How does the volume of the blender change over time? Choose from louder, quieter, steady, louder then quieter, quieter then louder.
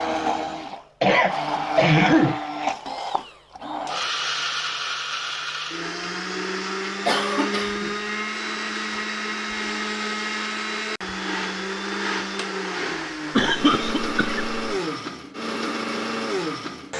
steady.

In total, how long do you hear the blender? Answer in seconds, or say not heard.
17 s.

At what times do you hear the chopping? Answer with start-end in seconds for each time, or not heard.
not heard.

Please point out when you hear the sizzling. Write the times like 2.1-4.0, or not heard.
not heard.